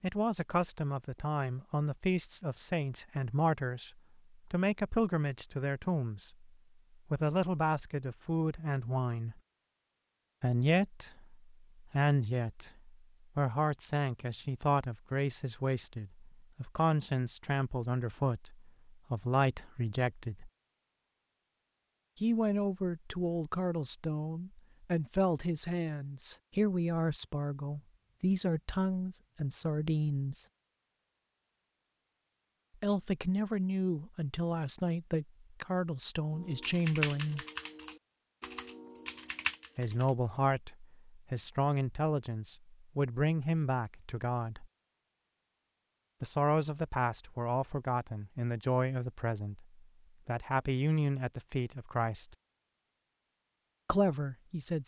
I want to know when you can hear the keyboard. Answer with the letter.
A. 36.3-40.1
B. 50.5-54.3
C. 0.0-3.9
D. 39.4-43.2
A.